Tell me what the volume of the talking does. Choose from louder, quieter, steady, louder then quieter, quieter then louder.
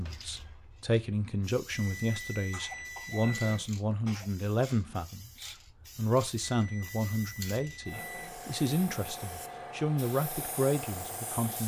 steady.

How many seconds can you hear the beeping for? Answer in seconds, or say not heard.
4 s.